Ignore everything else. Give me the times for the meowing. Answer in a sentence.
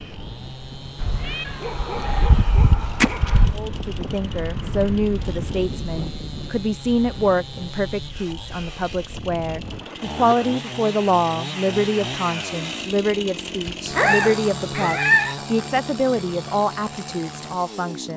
You can hear the meowing from 1.0 to 3.6 s and from 13.9 to 15.3 s.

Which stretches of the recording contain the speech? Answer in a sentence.
The speech can be heard from 3.5 to 18.1 s.